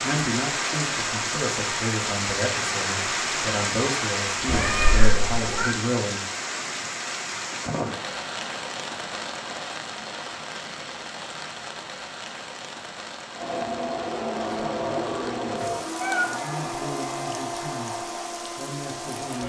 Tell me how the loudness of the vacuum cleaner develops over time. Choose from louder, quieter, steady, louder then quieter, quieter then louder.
quieter.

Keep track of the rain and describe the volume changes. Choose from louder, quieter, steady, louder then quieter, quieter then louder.
quieter.